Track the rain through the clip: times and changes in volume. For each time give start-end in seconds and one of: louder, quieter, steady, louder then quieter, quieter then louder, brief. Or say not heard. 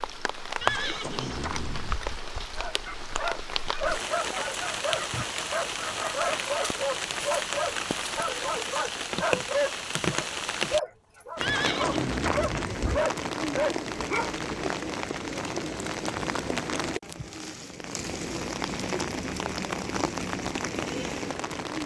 0.0-21.8 steady.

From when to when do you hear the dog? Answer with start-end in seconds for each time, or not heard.
2.5-14.4.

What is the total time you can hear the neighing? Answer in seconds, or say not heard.
3 s.